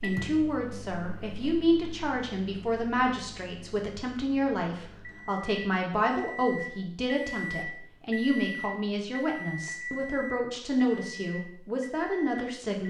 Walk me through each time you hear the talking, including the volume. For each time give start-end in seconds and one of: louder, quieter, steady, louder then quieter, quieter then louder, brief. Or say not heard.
0.0-12.8 steady.